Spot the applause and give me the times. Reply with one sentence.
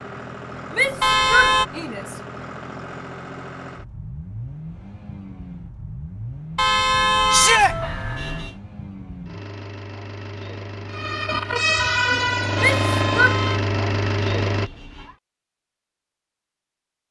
You can't hear the applause here.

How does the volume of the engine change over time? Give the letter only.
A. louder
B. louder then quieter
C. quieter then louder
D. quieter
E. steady
A.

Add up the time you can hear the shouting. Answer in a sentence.
You can hear the shouting for 3 seconds altogether.